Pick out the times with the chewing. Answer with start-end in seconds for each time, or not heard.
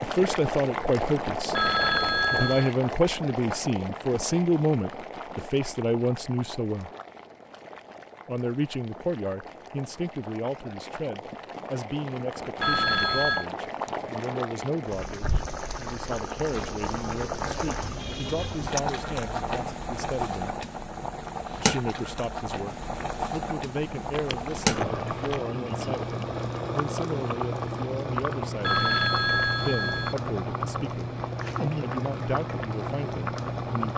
23.8-25.4.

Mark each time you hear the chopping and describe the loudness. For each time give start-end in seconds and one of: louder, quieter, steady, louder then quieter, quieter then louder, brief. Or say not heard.
not heard.